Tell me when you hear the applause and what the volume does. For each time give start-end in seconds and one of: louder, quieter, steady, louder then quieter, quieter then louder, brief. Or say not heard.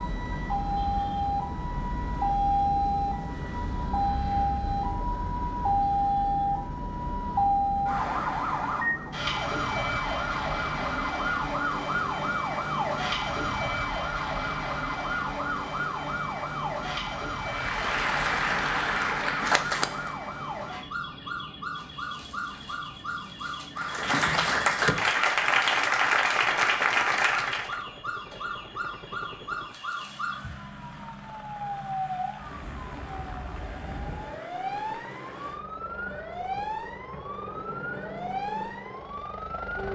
17.4-20.1 brief
23.8-27.8 steady.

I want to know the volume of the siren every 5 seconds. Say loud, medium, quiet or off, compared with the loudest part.
loud, loud, loud, medium, medium, medium, medium, medium.